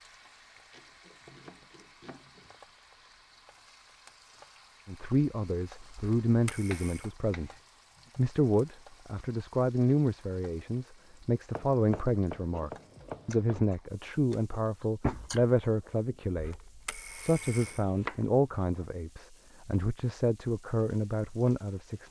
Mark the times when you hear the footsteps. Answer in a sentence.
You can't hear the footsteps here.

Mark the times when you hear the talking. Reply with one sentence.
The talking can be heard from 4.8 to 7.5 s and from 8.2 to 22.0 s.